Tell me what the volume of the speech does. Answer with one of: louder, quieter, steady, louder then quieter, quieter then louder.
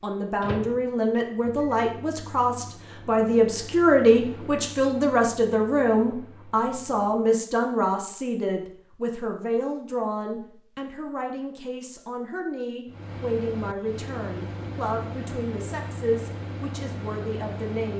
quieter.